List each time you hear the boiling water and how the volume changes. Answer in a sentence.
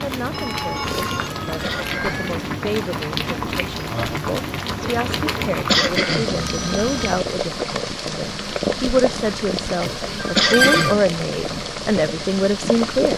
You can hear the boiling water from 0.0 to 13.1 s, at a steady volume.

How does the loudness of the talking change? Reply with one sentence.
The volume of the talking goes up.